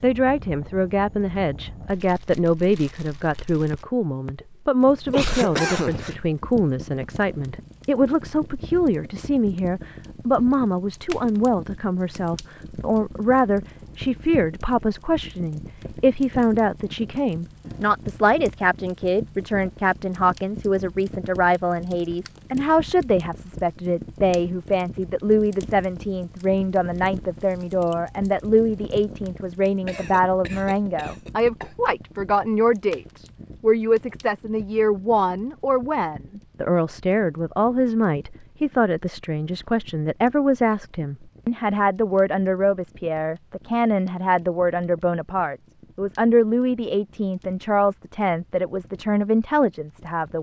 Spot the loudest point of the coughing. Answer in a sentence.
The loudest moment of the coughing is at 6 seconds.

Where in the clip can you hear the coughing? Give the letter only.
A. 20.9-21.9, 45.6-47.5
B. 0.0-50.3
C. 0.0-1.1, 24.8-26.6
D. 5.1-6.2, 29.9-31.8
D.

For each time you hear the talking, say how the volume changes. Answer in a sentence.
You can hear the talking from 0.0 to 50.3 s, at a steady volume.